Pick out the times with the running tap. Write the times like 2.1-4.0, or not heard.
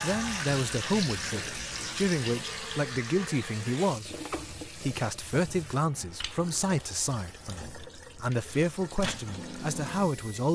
0.0-10.5.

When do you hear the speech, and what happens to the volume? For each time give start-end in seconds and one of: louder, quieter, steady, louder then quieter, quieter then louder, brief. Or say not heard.
0.0-10.5 steady.